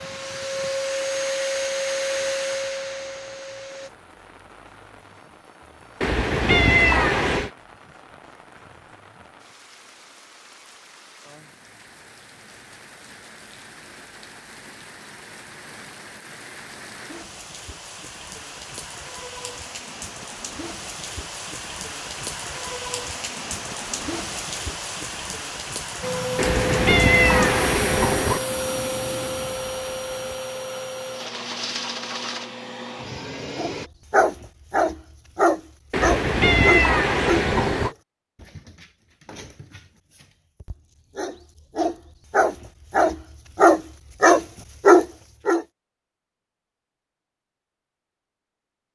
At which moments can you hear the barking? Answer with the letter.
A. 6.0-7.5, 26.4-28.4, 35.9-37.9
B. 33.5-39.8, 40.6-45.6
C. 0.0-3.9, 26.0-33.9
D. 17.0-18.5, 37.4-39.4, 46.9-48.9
B.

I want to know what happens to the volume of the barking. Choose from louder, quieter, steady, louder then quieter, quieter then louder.
quieter then louder.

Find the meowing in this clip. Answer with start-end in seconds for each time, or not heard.
6.0-7.5, 26.4-28.4, 35.9-37.9.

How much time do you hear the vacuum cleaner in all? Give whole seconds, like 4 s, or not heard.
12 s.